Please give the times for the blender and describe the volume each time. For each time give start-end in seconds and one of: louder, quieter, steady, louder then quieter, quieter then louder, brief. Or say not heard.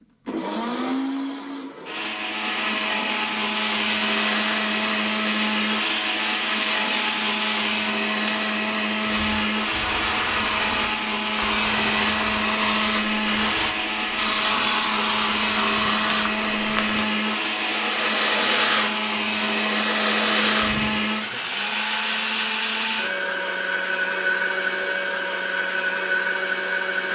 0.2-27.1 steady.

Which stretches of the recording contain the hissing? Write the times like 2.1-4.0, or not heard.
3.4-21.0.